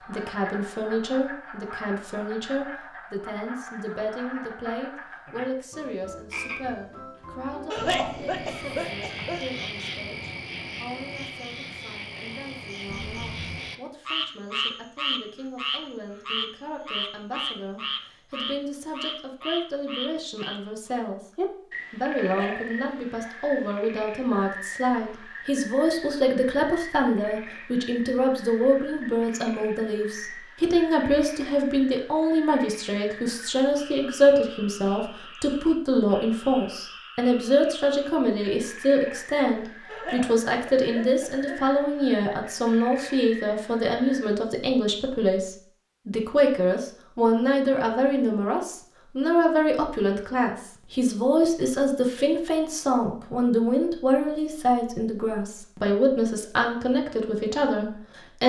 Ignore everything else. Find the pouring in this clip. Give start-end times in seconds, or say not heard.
not heard.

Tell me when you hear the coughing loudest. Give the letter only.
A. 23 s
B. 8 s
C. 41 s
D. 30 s
B.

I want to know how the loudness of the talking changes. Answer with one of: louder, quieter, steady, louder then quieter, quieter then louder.
louder.